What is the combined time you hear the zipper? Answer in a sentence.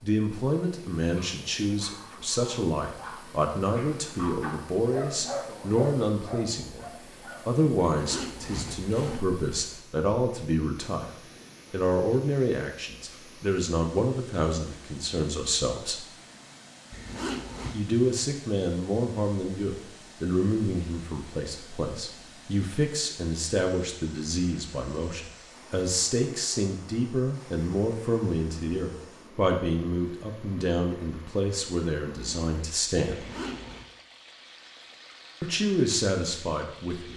You can hear the zipper for 3 seconds altogether.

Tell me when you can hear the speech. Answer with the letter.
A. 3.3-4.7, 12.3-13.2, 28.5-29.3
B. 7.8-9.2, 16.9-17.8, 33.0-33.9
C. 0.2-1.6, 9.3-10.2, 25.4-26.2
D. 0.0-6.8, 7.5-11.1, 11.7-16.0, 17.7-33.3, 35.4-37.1
D.